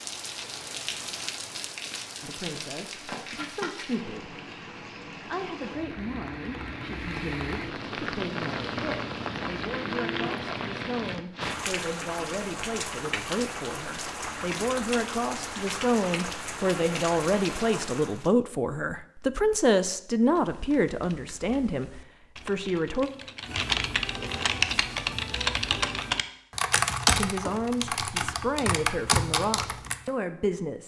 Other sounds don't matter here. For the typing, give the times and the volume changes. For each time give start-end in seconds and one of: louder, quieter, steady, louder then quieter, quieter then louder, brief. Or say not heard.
20.2-30.1 louder.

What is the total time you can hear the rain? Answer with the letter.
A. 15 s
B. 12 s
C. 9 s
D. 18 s
D.